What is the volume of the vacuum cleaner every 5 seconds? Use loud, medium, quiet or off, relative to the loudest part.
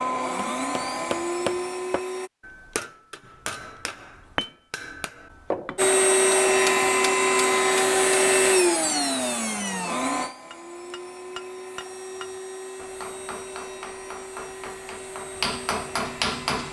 medium, loud, quiet, quiet.